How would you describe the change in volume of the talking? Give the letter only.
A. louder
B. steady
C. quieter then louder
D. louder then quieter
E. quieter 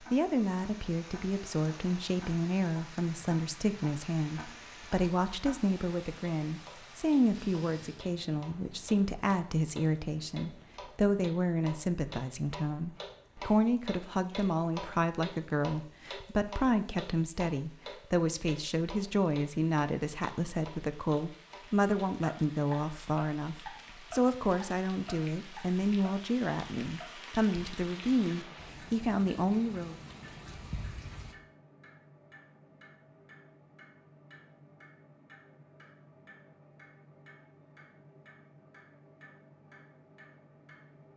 B.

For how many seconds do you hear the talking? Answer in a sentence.
The talking can be heard for 30 seconds in total.